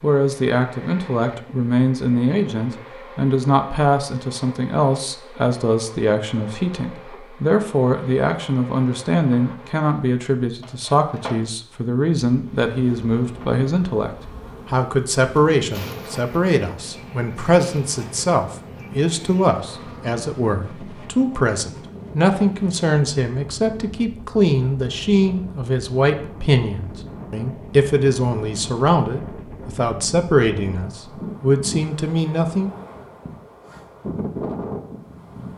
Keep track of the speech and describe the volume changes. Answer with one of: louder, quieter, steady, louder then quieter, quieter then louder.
steady.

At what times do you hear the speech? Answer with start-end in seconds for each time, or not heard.
0.0-32.7.